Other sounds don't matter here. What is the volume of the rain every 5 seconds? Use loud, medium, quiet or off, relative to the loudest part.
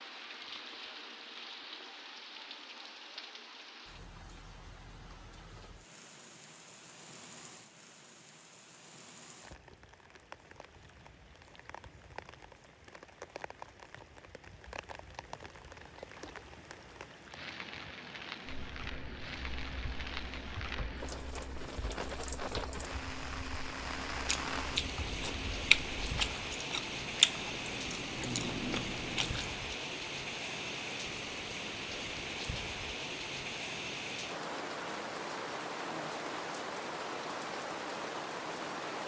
medium, quiet, quiet, medium, loud, loud, loud, loud.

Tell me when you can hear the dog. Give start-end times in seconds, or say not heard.
not heard.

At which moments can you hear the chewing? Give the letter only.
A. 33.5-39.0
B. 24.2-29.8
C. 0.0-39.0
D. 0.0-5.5
B.